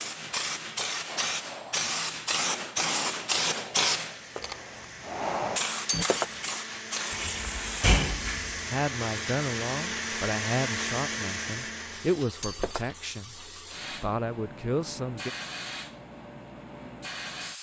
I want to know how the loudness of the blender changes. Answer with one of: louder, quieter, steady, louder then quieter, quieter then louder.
louder.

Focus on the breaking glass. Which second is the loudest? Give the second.
6 s.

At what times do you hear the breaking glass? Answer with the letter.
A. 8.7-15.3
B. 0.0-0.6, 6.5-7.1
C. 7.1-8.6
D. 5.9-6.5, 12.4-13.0
D.